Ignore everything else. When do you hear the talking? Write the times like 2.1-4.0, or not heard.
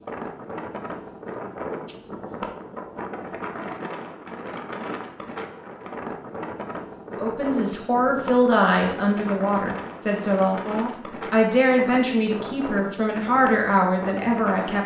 7.1-14.8.